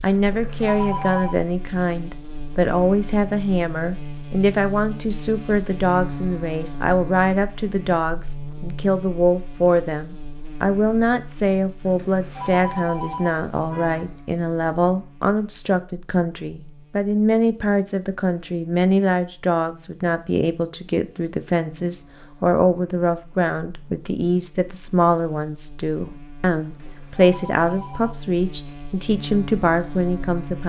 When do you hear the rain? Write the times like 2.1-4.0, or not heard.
not heard.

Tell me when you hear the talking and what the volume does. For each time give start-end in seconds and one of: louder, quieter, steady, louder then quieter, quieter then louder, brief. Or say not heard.
0.0-30.6 steady.